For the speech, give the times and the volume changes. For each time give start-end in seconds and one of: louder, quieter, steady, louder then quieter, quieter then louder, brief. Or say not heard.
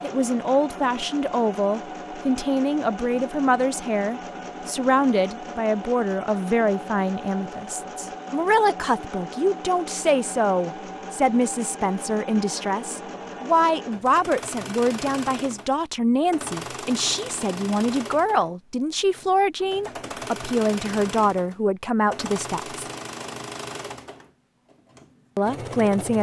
0.0-22.8 steady
25.4-26.1 brief.